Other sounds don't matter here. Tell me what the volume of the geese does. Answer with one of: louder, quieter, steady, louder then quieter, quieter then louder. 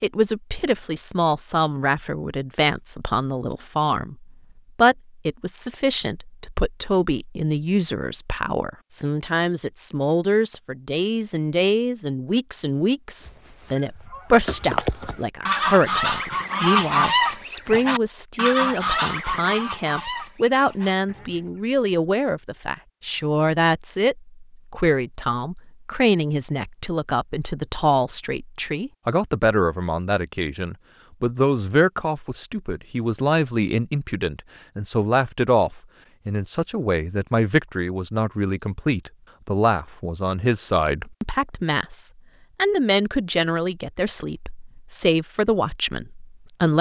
louder then quieter.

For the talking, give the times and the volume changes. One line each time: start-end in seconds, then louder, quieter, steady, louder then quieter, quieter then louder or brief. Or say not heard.
0.0-46.7 steady.